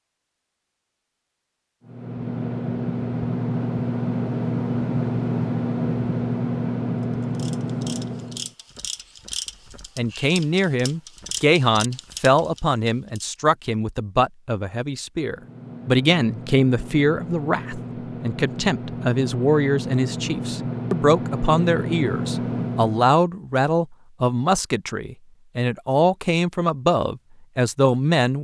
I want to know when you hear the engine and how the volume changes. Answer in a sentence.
You can hear the engine from 1.8 to 8.6 s, at a steady volume; and from 15.2 to 23.1 s, getting louder.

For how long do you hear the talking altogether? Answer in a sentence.
The talking can be heard for 18 seconds in total.